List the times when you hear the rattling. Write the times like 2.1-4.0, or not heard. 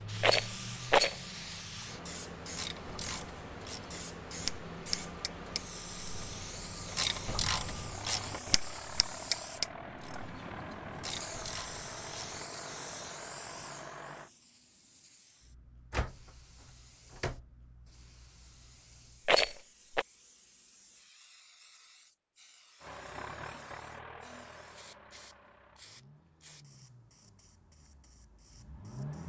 0.2-1.1, 19.2-20.1.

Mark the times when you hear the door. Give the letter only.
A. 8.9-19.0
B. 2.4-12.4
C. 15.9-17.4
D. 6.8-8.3
C.